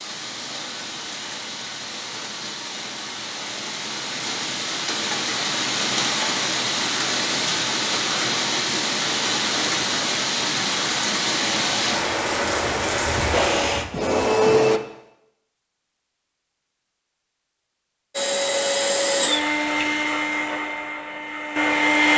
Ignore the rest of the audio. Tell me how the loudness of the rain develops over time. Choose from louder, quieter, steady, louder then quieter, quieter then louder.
louder.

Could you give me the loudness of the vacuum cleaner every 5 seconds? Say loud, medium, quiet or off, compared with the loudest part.
off, off, loud, loud, loud.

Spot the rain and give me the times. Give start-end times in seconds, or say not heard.
0.0-13.9.